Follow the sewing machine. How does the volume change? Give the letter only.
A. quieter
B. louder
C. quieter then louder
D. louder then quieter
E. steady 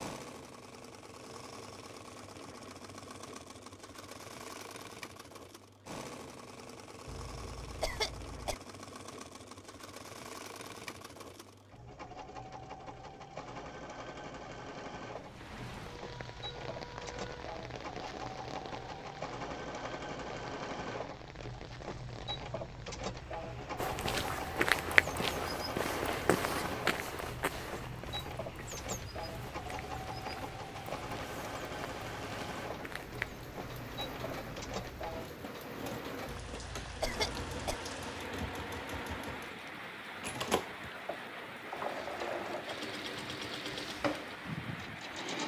B.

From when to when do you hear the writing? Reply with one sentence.
You can't hear the writing here.